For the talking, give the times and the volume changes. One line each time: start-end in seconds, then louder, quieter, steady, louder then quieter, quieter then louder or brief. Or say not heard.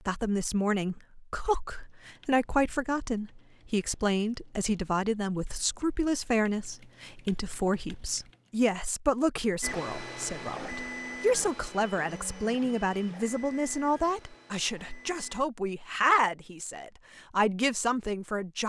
0.1-18.6 steady.